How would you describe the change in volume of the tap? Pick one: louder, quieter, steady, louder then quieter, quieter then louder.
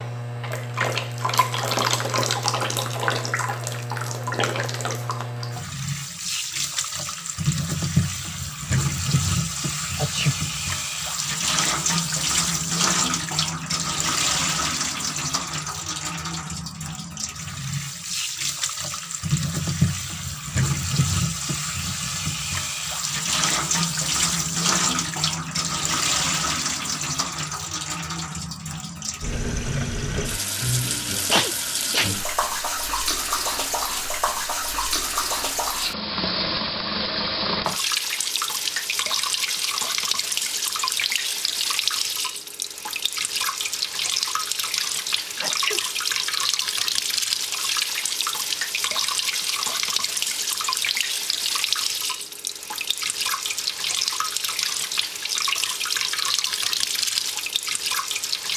steady.